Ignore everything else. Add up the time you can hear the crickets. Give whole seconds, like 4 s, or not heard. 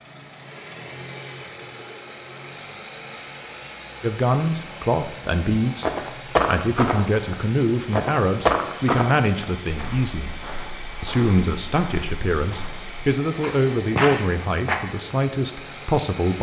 not heard.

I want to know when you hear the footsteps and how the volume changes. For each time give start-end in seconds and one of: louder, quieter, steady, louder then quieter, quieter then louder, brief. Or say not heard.
5.8-14.8 quieter then louder.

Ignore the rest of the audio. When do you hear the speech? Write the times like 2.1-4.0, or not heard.
4.0-10.3, 11.0-16.3.